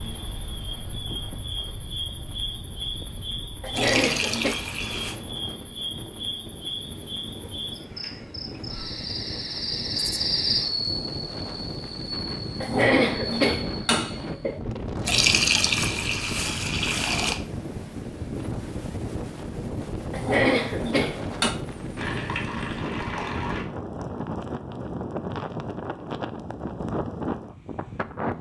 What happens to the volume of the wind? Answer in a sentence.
The loudness of the wind goes up.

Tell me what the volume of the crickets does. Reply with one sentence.
The volume of the crickets goes up, then down.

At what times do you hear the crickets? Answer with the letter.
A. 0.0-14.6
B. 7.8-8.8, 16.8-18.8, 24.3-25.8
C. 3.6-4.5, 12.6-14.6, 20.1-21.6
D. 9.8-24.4
A.